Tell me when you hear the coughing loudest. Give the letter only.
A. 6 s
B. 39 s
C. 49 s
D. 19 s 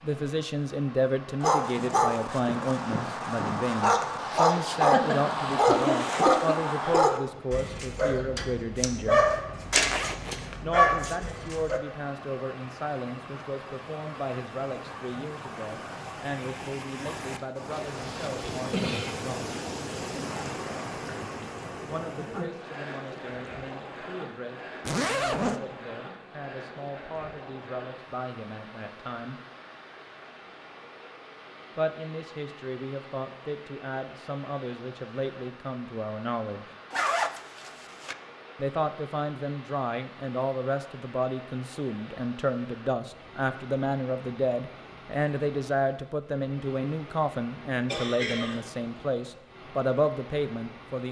A.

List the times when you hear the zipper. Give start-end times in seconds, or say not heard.
9.8-10.6, 24.9-25.6, 36.9-38.1.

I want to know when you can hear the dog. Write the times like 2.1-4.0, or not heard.
1.4-11.8.